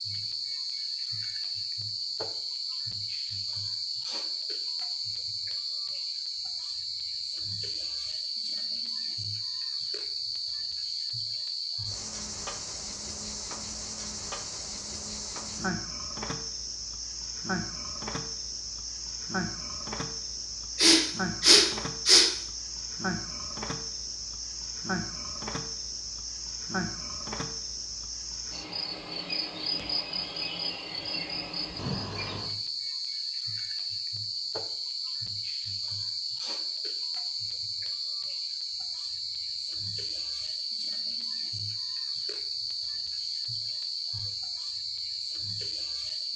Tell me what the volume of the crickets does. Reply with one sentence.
The volume of the crickets stays about the same.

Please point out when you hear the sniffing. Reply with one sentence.
You can hear the sniffing from 20.8 to 22.3 s.